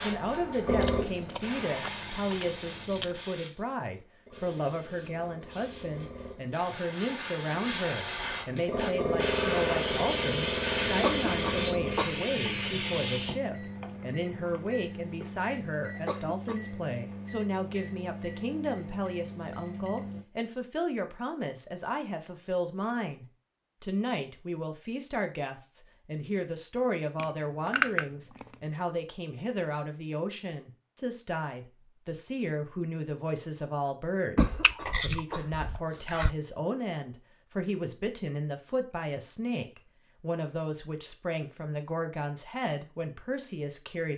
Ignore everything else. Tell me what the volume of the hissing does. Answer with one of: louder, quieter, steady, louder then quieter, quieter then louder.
quieter then louder.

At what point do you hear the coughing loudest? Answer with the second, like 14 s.
11 s.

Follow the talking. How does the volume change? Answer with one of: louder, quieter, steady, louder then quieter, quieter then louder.
steady.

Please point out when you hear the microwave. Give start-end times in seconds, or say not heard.
11.0-20.2.